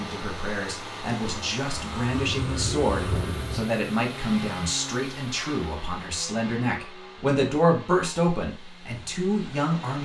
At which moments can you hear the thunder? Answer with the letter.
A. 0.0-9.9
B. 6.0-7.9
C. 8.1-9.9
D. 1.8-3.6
D.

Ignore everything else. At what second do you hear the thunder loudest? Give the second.
3 s.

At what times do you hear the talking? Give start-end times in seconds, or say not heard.
0.0-9.9.